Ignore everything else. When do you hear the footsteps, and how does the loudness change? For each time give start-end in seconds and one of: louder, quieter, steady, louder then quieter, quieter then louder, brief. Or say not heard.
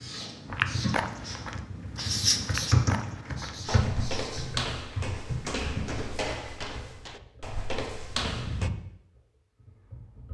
0.5-8.7 steady.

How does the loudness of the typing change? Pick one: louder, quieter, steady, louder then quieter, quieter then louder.
louder then quieter.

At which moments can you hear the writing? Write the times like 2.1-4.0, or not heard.
0.0-4.5.